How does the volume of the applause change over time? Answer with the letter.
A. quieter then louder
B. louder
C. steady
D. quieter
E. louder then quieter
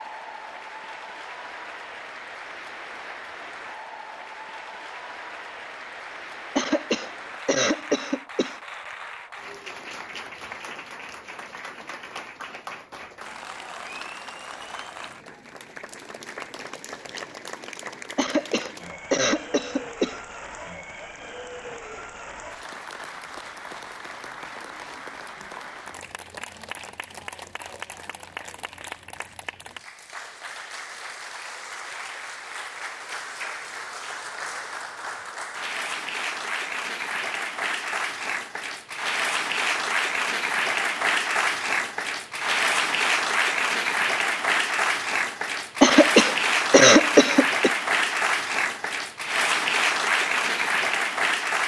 B.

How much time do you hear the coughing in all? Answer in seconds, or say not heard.
6 s.